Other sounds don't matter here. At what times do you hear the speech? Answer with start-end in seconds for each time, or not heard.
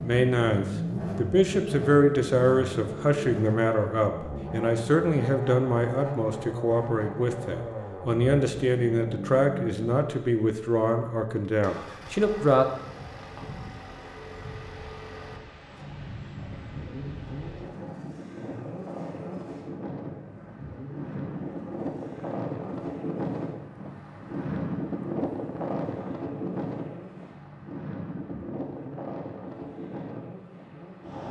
0.0-12.7.